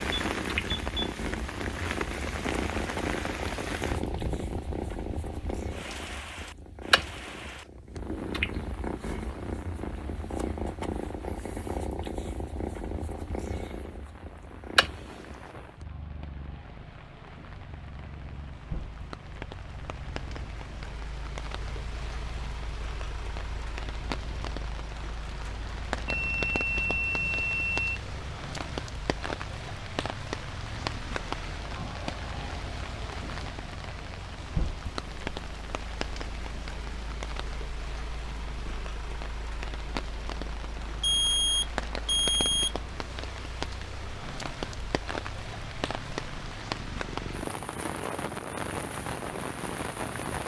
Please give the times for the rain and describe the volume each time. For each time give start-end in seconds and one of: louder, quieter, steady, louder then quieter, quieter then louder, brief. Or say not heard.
0.0-50.4 quieter then louder.